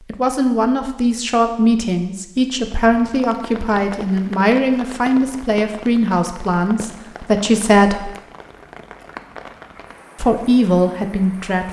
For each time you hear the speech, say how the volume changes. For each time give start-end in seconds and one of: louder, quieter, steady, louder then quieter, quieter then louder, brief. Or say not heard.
0.1-8.1 steady
10.2-11.6 brief.